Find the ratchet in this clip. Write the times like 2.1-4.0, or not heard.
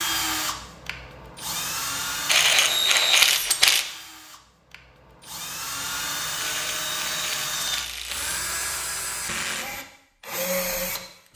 2.2-3.9, 6.4-8.4.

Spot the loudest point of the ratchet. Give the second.
3 s.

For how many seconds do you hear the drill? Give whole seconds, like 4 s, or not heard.
11 s.